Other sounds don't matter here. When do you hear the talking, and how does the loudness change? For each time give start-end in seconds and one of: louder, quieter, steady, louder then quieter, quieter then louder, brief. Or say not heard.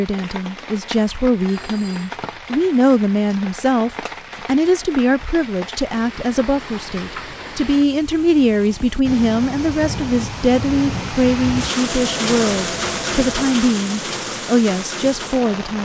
0.0-15.8 steady.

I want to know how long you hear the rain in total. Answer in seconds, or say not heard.
16 s.